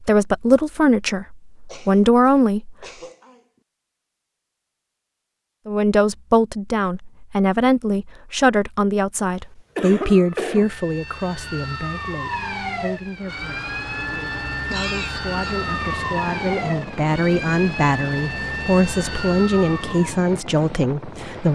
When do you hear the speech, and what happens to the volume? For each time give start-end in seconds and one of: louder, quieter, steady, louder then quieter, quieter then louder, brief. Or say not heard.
0.0-2.8 brief
5.7-21.5 quieter then louder.